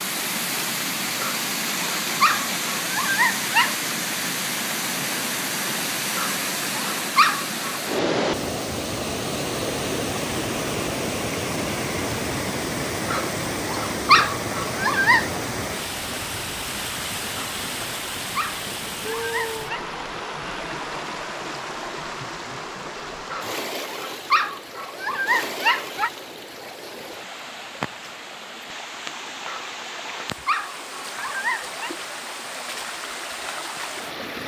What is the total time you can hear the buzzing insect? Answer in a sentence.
You can't hear the buzzing insect here.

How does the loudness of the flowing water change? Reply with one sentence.
The loudness of the flowing water goes down.